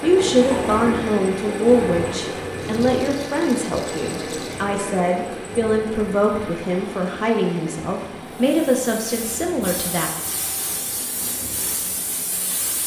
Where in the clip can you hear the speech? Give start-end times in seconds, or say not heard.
0.0-10.1.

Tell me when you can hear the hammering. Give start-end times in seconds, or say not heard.
not heard.